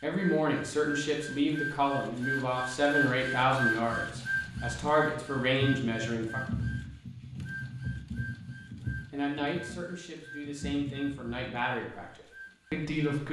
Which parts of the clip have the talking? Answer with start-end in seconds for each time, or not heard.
0.0-6.4, 9.1-13.2.